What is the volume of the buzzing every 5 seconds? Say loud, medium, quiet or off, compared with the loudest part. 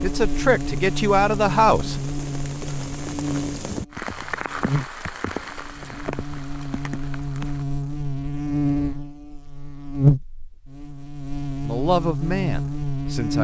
medium, medium, loud.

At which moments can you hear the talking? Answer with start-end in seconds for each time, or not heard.
0.0-1.9, 11.7-13.3.